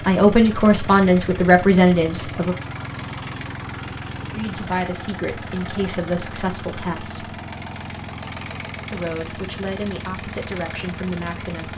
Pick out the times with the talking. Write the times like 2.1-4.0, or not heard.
0.0-2.5, 4.3-7.3, 8.9-11.7.